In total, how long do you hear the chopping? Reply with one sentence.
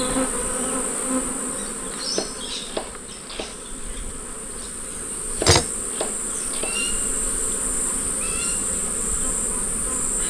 The chopping can be heard for 3 seconds in total.